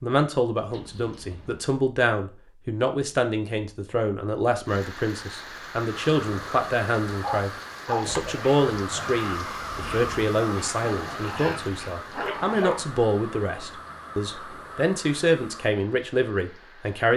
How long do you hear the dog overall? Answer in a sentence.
You can hear the dog for 6 seconds altogether.